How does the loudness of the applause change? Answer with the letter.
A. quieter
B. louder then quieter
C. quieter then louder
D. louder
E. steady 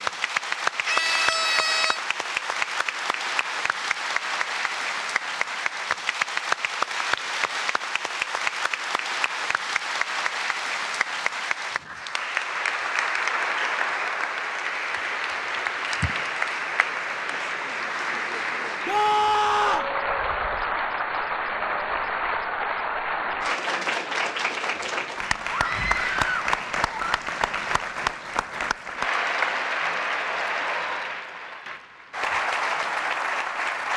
E.